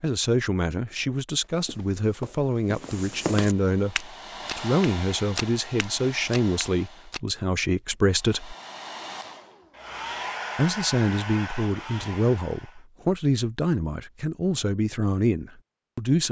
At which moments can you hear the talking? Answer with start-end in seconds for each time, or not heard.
0.0-4.0, 4.5-8.6, 10.6-16.2.